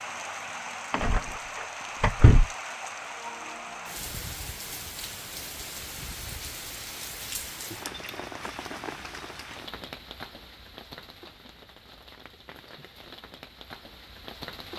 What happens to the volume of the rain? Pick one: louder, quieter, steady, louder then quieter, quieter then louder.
quieter.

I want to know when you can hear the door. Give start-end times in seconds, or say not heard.
0.9-2.5.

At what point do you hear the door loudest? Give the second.
2 s.